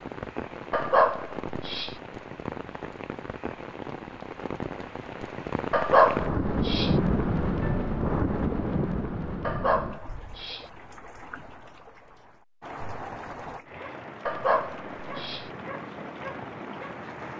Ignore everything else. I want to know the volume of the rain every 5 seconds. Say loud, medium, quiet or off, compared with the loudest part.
medium, loud, quiet, medium.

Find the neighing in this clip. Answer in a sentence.
You can't hear the neighing here.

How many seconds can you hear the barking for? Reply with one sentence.
You can hear the barking for 5 seconds altogether.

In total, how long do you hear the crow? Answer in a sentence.
The crow can't be heard in this clip.